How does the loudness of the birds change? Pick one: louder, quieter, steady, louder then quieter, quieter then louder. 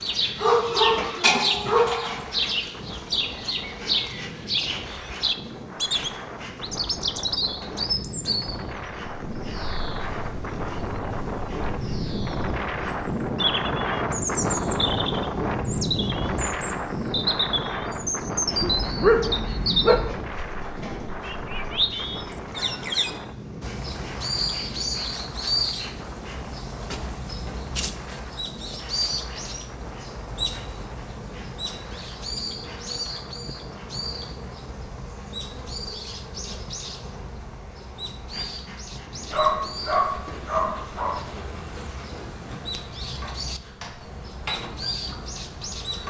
quieter.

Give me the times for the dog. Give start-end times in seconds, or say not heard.
0.4-2.2, 18.6-20.1, 39.3-41.2.